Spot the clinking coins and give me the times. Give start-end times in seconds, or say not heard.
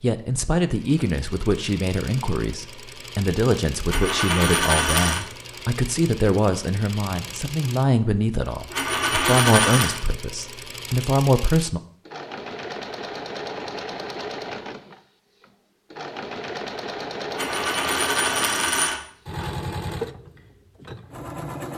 3.9-5.2, 8.7-10.0, 17.3-19.5.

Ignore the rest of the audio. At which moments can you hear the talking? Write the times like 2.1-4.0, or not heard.
0.0-11.8.